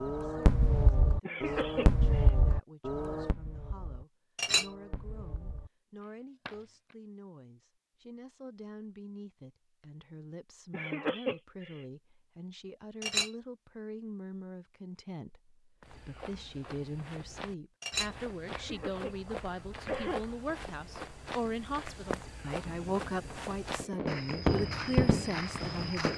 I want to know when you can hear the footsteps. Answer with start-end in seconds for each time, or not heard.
15.8-26.1.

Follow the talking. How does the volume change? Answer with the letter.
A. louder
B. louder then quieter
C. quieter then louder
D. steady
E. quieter
A.